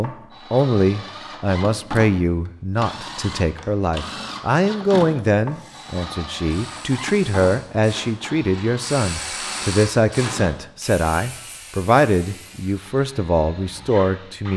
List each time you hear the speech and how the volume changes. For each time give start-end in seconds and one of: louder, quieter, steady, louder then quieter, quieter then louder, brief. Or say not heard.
0.0-14.5 steady.